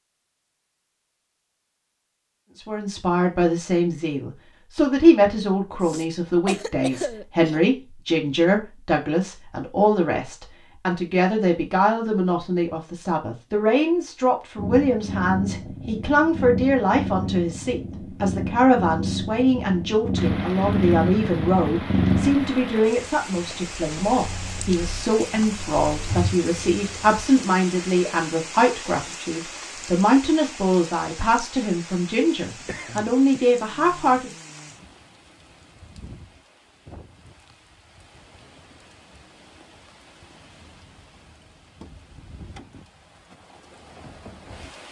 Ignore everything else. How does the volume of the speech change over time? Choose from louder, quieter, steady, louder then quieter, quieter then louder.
steady.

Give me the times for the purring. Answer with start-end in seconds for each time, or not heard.
14.6-27.2.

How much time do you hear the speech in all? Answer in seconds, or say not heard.
32 s.